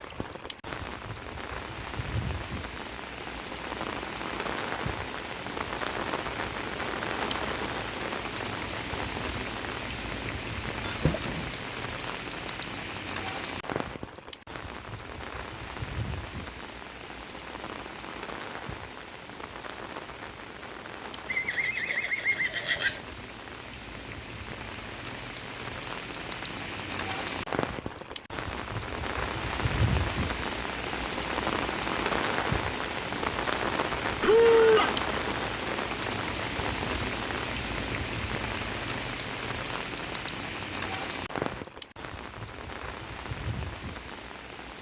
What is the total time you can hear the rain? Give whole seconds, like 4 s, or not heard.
45 s.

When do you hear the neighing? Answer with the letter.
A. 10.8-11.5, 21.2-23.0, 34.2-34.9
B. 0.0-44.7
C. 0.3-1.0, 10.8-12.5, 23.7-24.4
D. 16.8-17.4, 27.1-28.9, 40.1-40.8
A.